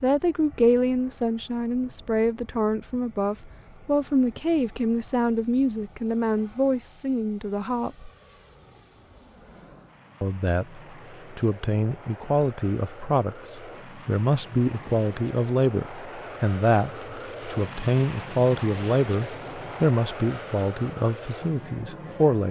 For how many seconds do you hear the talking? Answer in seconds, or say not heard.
20 s.